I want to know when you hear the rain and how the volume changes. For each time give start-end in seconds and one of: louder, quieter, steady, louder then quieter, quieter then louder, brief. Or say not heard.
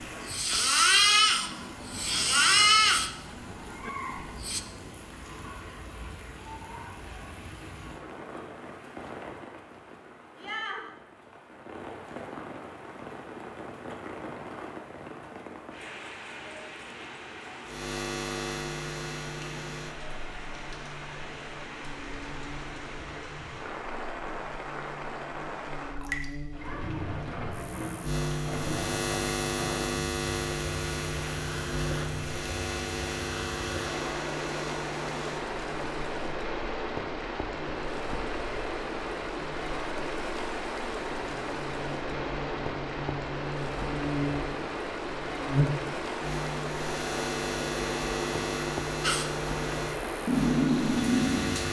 0.0-51.6 louder.